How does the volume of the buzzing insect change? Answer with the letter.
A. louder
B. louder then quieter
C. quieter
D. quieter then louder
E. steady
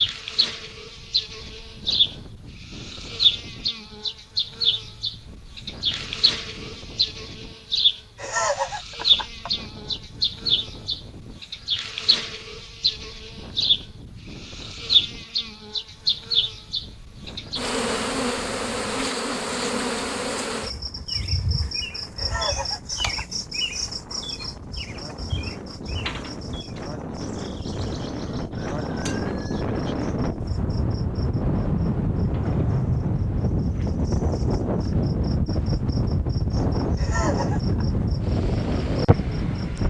C.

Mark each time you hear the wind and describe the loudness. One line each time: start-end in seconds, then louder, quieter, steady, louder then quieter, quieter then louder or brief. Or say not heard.
0.0-39.8 louder.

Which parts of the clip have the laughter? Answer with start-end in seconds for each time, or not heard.
8.2-9.5, 22.1-23.2, 37.0-37.9.